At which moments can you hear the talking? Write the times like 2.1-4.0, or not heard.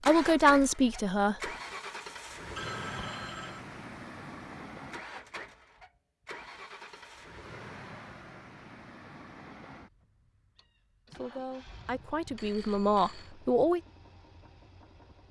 0.0-1.5, 11.2-13.8.